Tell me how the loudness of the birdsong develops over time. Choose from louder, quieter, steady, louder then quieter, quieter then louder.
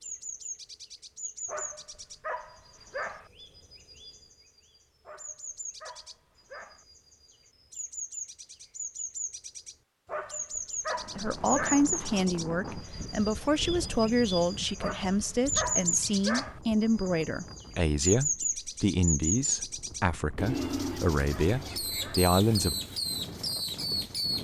louder.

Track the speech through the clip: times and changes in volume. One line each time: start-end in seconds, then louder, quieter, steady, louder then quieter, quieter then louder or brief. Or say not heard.
11.2-22.8 steady.